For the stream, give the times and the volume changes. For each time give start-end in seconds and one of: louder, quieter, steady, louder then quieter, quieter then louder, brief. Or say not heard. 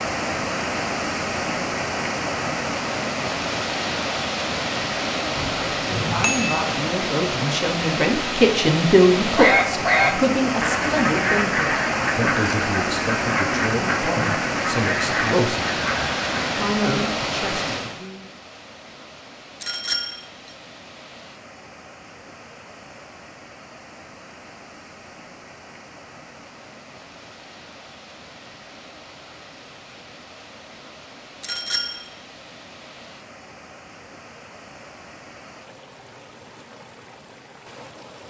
0.0-38.2 quieter.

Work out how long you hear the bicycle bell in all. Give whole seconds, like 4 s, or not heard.
3 s.